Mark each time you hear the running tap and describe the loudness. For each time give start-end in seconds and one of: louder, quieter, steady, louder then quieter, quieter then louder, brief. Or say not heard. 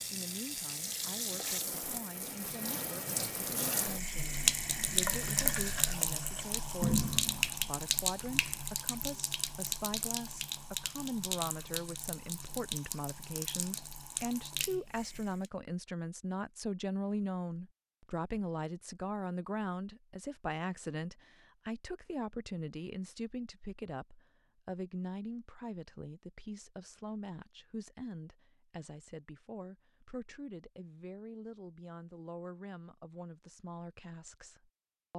0.0-15.5 louder then quieter.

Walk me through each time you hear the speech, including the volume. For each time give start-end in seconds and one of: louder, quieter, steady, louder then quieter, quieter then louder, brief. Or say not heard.
0.1-35.1 louder then quieter.